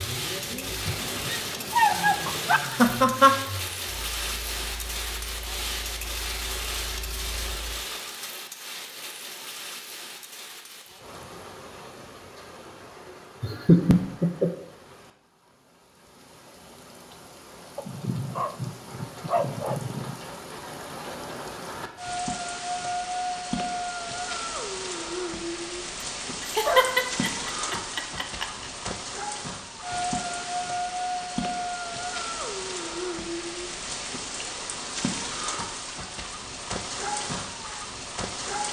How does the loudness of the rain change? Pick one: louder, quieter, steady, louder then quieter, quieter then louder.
quieter then louder.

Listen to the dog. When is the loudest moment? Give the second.
2 s.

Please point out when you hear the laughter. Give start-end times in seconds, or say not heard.
2.5-3.4, 13.4-14.5, 26.4-28.6.